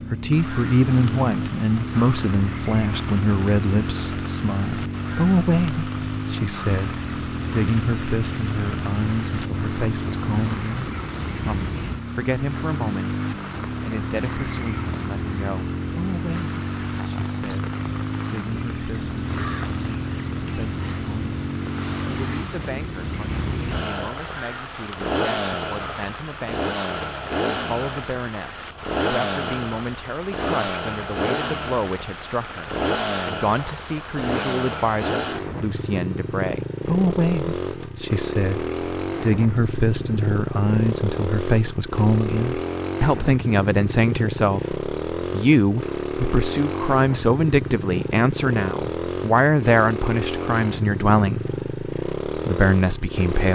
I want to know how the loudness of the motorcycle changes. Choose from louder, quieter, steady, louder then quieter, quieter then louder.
steady.